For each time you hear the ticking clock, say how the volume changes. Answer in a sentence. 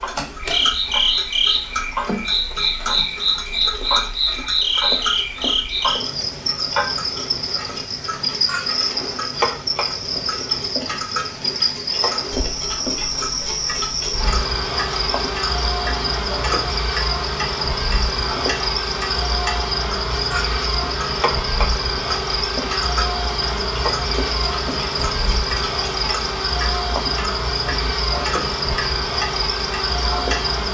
The ticking clock can be heard from 0.0 to 30.6 s, at a steady volume.